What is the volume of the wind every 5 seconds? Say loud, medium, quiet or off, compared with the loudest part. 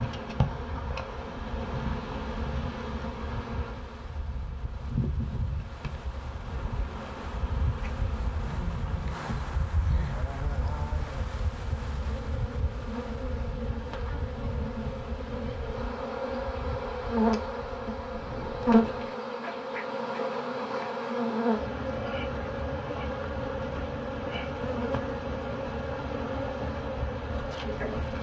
medium, loud, loud, medium, off, off.